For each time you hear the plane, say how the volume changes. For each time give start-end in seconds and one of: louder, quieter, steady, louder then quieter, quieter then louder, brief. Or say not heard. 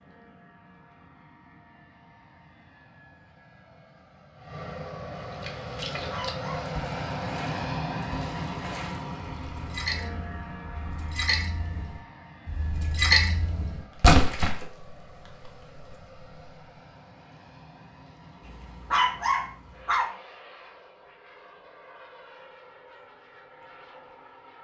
0.0-24.5 louder then quieter.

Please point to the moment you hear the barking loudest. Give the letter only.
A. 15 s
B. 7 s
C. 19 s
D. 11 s
C.